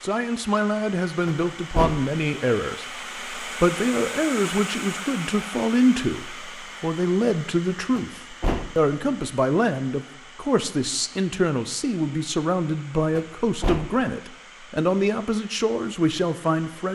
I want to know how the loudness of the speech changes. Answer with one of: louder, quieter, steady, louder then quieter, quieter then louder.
steady.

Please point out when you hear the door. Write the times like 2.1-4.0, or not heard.
1.2-2.1, 8.0-8.8, 13.2-13.9.